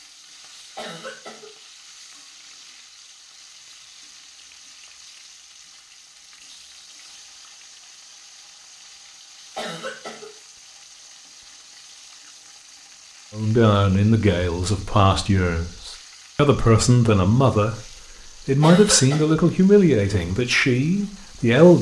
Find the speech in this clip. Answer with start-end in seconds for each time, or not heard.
13.3-21.7.